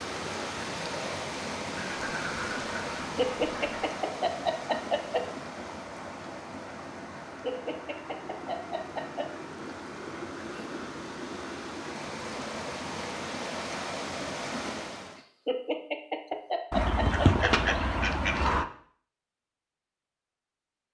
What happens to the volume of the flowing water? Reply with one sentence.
The loudness of the flowing water goes down, then up.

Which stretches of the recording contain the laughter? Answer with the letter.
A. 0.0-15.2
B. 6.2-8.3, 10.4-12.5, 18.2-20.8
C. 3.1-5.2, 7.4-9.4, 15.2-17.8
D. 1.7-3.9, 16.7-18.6
C.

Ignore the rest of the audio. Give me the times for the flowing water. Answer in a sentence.
The flowing water can be heard from 0.0 to 15.2 s.